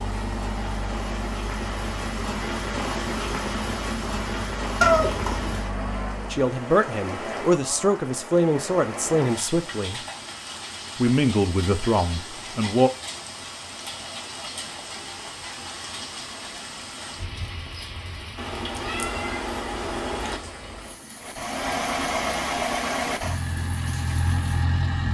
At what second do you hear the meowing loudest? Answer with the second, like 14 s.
5 s.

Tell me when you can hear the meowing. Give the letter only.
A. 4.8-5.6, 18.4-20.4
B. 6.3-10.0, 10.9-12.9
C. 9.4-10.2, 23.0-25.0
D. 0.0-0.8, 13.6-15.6
A.